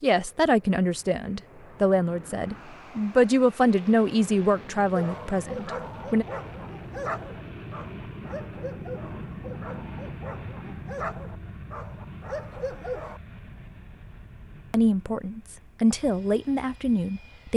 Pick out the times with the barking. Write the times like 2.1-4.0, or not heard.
5.0-13.2.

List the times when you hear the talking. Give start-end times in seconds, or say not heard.
0.0-6.2, 14.7-17.5.